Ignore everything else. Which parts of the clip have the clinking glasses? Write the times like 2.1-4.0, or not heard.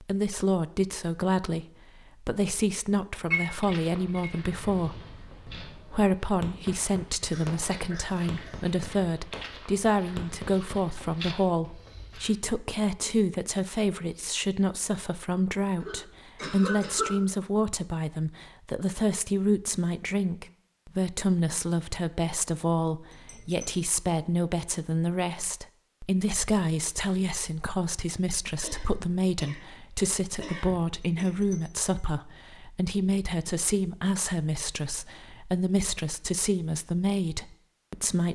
3.3-4.4, 23.1-23.9, 31.2-31.9.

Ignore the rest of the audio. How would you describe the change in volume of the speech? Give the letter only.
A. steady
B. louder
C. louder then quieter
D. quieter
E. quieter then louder
A.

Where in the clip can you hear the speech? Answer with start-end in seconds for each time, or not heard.
0.0-38.3.